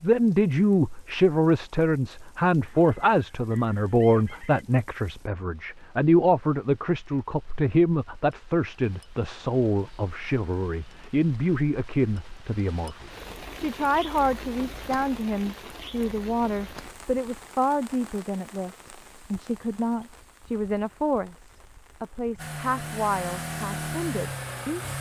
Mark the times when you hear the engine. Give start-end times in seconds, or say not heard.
22.4-24.9.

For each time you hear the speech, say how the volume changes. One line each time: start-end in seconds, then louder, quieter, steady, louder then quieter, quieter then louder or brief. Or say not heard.
0.0-24.9 quieter.